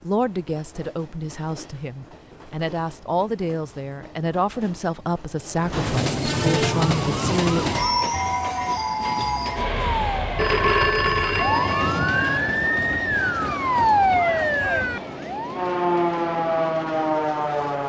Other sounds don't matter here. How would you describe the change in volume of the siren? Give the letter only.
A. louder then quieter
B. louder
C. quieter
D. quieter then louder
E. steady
B.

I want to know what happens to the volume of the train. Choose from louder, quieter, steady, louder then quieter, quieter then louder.
louder then quieter.